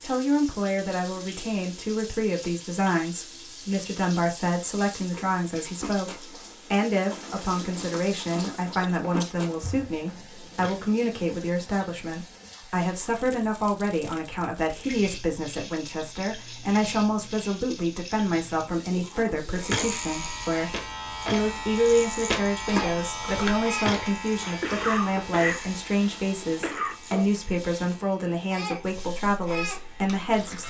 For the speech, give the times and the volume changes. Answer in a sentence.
The speech can be heard from 0.0 to 30.6 s, at a steady volume.